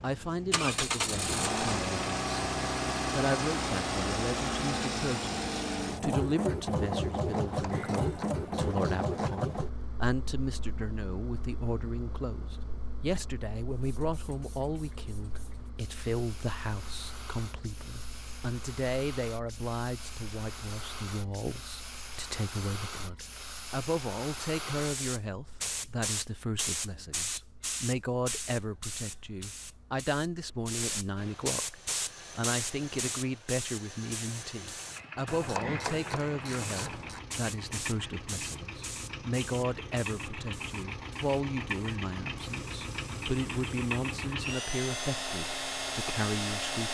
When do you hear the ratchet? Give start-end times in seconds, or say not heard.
7.4-9.3, 35.2-37.2.